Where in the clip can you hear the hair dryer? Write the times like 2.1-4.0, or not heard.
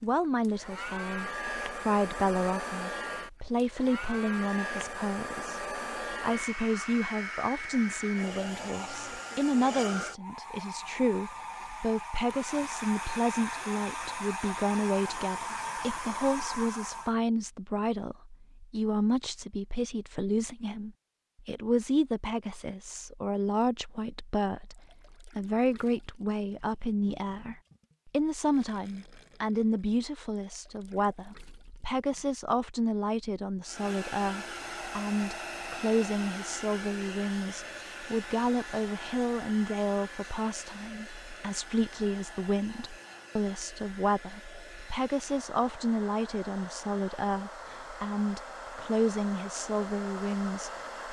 0.0-17.1, 33.6-51.0.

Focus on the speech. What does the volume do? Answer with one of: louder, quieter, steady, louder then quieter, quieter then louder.
steady.